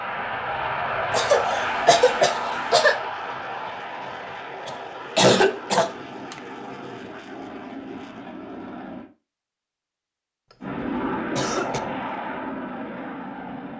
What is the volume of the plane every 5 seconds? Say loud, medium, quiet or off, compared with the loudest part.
loud, medium, loud.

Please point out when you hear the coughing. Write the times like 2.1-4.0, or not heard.
1.1-3.0, 4.7-6.3, 10.5-11.8.